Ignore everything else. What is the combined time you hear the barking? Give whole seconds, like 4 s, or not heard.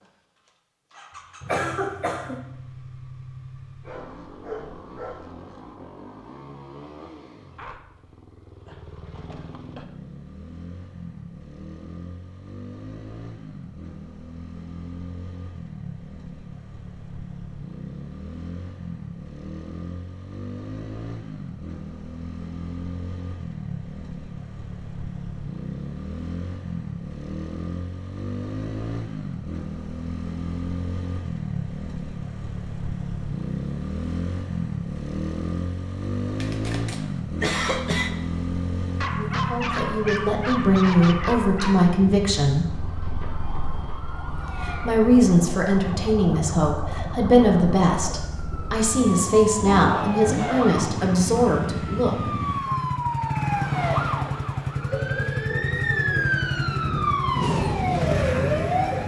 6 s.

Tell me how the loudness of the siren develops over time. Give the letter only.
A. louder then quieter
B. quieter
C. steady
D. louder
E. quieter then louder
D.